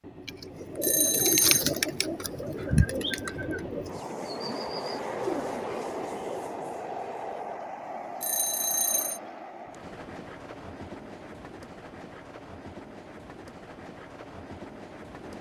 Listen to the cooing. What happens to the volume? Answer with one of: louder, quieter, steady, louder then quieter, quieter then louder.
quieter then louder.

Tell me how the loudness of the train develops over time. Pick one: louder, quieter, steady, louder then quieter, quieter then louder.
louder then quieter.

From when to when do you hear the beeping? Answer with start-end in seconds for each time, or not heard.
0.8-1.6, 8.2-9.2.